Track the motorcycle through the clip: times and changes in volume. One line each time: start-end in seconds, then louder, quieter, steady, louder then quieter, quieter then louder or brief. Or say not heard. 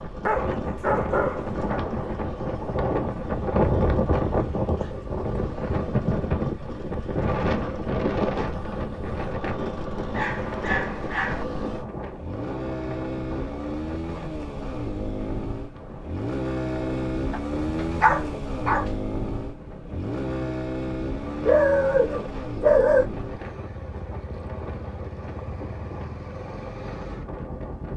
0.0-27.9 louder then quieter.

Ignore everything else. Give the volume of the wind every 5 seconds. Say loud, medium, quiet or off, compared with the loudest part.
loud, loud, medium, quiet, quiet, quiet.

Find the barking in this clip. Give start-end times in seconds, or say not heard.
0.2-1.9, 10.1-11.4, 17.3-18.9, 21.4-23.1.